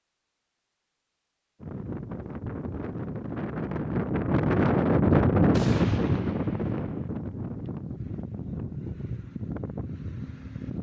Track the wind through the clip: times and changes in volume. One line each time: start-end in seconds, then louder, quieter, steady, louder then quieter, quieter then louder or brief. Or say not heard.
1.6-10.7 louder then quieter.